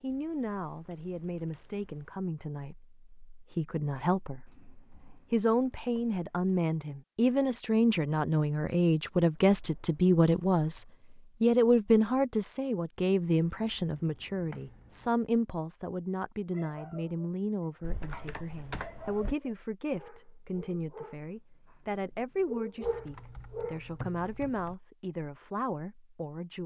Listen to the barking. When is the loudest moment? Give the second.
23 s.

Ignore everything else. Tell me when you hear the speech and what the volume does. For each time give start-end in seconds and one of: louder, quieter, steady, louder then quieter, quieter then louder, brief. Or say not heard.
0.0-26.6 louder then quieter.